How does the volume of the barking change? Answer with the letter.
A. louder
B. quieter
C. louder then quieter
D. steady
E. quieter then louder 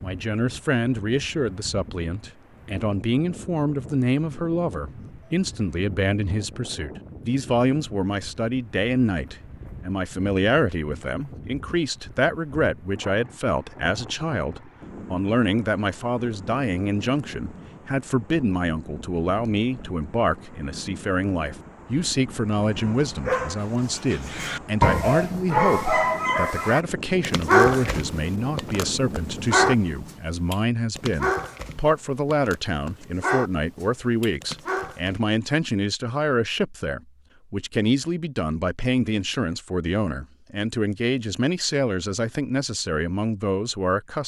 B.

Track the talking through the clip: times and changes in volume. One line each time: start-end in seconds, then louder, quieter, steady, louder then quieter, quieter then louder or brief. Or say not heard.
0.0-44.2 steady.